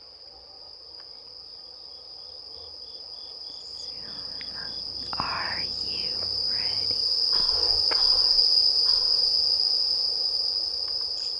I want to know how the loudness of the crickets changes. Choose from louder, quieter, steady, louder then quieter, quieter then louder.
louder.